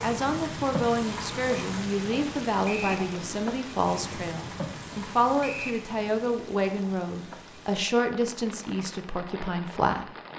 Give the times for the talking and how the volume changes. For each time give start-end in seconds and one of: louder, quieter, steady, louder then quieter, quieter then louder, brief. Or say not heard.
0.0-10.1 steady.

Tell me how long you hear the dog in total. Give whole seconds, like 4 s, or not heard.
not heard.